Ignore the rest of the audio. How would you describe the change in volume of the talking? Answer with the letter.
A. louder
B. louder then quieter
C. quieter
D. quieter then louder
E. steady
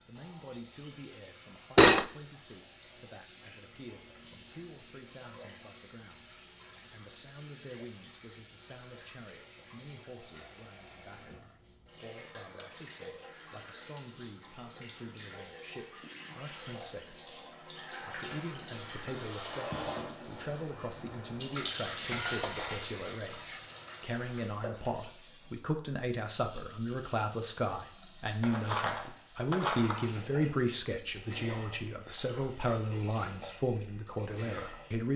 A.